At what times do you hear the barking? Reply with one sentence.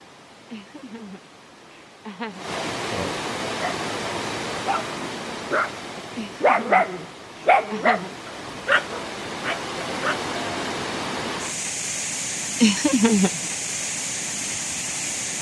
You can hear the barking from 3.5 to 3.9 s and from 4.7 to 10.2 s.